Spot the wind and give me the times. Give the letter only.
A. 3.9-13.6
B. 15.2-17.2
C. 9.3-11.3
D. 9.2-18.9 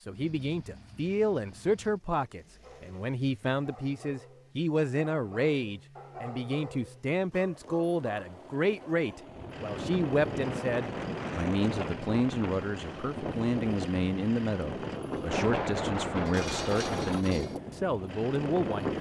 D.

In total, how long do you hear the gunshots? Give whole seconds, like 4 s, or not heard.
2 s.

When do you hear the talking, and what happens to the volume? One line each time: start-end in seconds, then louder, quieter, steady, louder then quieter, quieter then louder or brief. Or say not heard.
0.0-18.9 steady.